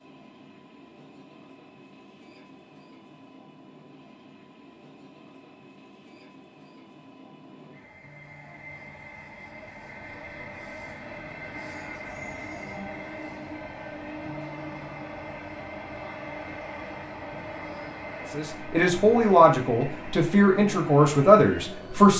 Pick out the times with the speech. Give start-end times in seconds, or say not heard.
18.3-22.1.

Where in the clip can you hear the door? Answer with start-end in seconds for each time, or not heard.
not heard.